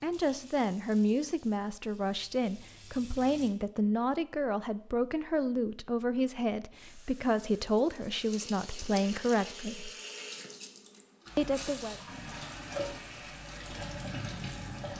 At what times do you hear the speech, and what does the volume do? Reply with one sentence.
The speech can be heard from 0.0 to 9.9 s, at a steady volume; and briefly from 11.3 to 11.9 s.